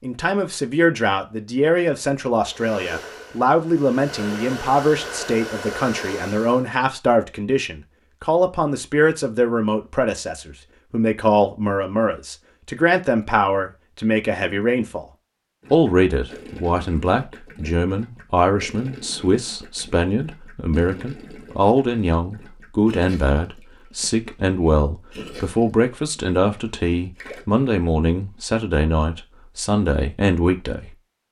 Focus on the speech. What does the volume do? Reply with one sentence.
The volume of the speech stays about the same.